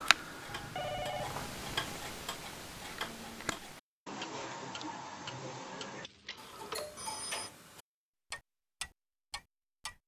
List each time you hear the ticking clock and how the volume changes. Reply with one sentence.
You can hear the ticking clock from 0.0 to 10.0 s, at a steady volume.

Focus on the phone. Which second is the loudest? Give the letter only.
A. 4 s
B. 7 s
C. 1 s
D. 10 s
C.